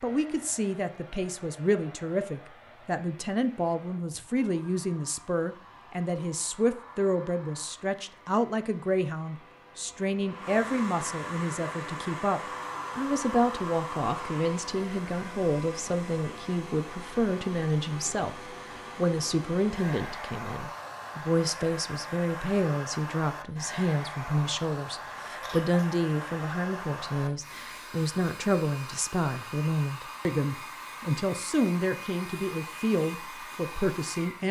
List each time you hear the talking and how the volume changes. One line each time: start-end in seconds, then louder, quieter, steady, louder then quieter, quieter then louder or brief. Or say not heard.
0.0-34.4 steady.